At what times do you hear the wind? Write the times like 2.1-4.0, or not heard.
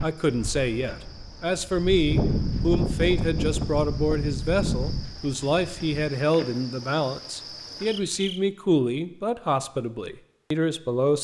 0.0-6.1.